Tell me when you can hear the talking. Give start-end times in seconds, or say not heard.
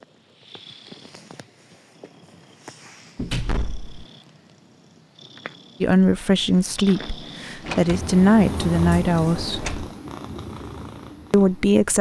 5.8-9.8, 11.3-11.9.